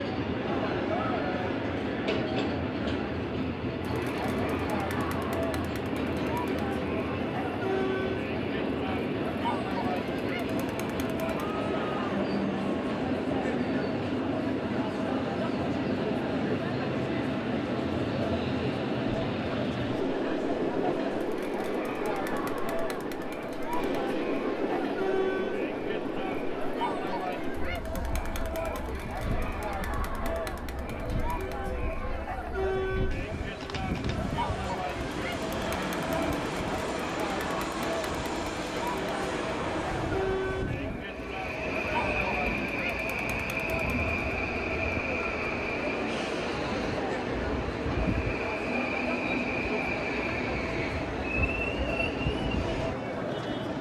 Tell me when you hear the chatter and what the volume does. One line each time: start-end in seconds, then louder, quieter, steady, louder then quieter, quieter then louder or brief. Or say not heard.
0.2-53.7 steady.